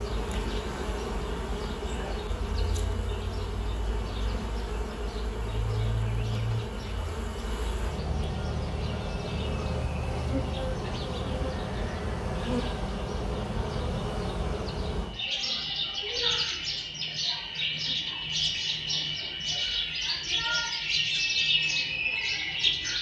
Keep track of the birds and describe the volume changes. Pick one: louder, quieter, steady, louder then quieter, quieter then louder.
louder.